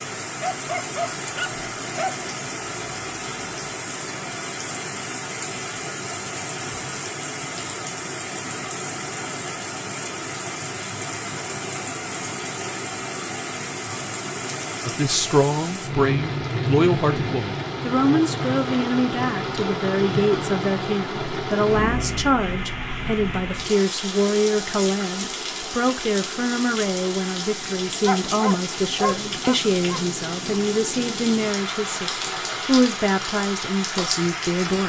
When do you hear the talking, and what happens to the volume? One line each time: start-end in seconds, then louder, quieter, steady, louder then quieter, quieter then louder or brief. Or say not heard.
14.8-34.8 steady.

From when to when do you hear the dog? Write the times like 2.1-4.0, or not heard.
0.4-2.1, 28.1-30.0.